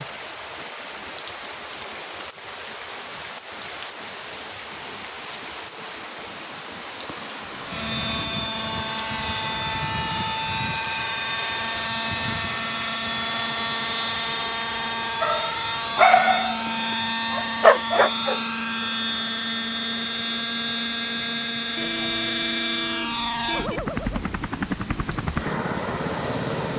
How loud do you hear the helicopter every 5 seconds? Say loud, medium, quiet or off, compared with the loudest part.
off, loud, loud, loud, loud, loud.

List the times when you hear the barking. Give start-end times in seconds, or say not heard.
15.2-18.4.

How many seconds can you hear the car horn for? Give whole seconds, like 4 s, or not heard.
2 s.